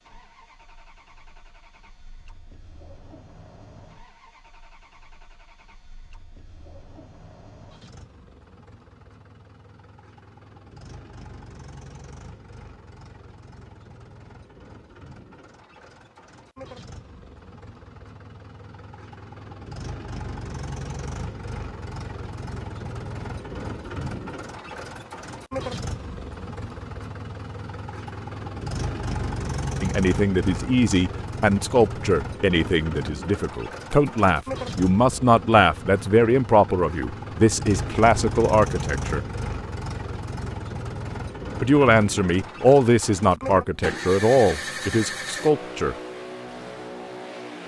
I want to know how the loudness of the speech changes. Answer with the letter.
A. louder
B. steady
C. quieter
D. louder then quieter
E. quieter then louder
B.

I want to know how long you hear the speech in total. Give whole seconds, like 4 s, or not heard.
14 s.